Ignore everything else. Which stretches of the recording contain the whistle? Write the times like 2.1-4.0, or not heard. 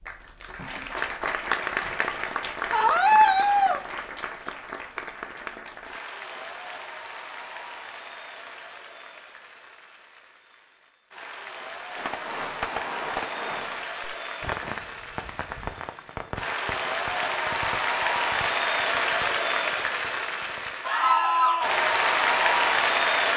not heard.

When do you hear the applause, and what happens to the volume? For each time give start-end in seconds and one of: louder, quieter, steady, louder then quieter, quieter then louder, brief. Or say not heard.
0.0-23.3 quieter then louder.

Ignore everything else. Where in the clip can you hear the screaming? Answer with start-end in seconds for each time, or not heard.
2.7-3.8, 20.9-21.8.